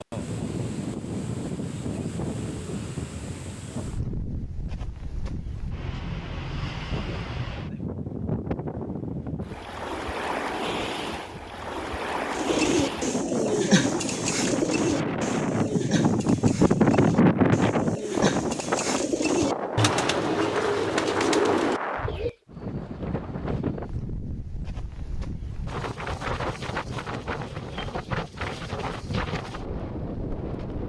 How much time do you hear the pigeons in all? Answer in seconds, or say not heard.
10 s.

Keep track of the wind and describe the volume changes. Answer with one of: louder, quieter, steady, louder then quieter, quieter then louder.
louder then quieter.